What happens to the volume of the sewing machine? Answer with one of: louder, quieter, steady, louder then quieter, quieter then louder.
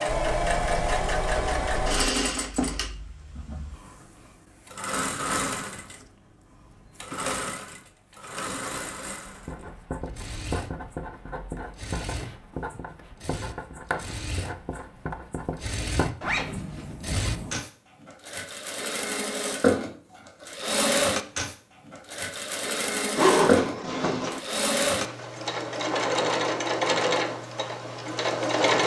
quieter then louder.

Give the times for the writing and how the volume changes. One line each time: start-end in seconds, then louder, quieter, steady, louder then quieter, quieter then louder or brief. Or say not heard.
9.2-17.6 steady.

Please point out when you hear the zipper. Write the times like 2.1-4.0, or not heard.
0.1-2.1, 16.2-16.9, 23.1-24.4.